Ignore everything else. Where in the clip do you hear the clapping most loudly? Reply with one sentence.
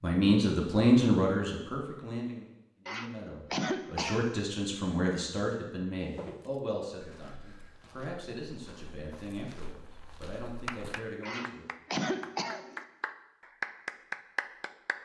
The loudest moment of the clapping is at 14 seconds.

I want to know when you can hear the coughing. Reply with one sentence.
You can hear the coughing from 2.9 to 4.4 s and from 11.2 to 12.8 s.